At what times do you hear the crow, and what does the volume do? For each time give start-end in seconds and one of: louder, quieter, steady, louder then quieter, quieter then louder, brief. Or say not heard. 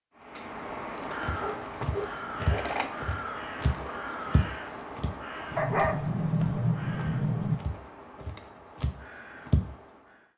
0.1-10.3 quieter.